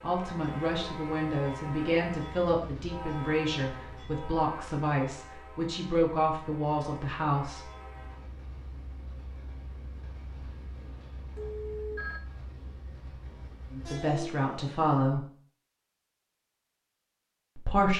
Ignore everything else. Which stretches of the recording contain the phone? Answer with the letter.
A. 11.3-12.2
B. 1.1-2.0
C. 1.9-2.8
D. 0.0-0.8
A.